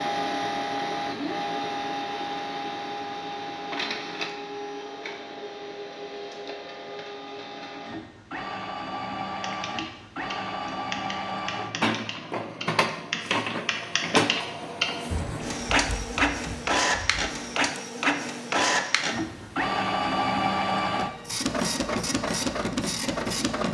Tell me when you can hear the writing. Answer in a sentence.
You can't hear the writing here.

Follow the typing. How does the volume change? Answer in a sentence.
The volume of the typing goes up, then down.